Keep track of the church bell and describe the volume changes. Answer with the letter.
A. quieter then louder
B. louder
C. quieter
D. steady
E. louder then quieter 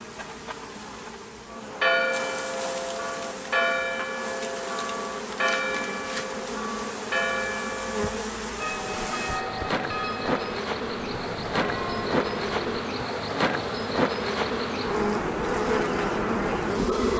C.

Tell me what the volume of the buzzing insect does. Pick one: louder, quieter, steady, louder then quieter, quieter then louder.
louder.